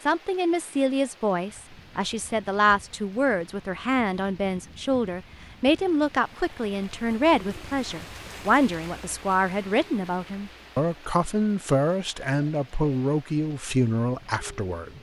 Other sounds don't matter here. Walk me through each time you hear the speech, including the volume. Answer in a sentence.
You can hear the speech from 0.1 to 14.9 s, at a steady volume.